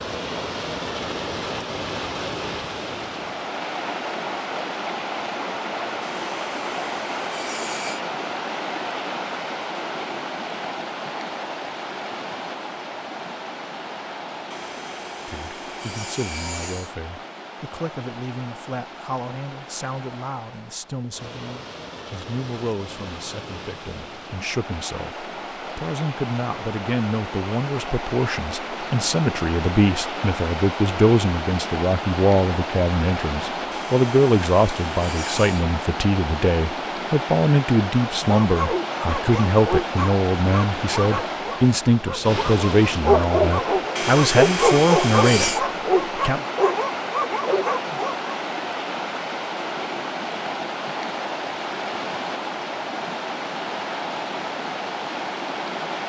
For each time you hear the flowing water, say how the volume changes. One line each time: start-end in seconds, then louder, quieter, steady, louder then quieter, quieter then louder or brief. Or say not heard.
0.0-56.0 quieter then louder.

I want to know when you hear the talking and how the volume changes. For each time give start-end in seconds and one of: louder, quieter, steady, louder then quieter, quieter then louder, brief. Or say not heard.
15.2-46.4 louder.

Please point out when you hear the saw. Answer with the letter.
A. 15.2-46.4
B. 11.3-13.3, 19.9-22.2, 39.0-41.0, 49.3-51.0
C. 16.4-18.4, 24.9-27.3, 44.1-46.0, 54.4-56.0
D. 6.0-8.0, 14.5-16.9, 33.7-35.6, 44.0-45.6
D.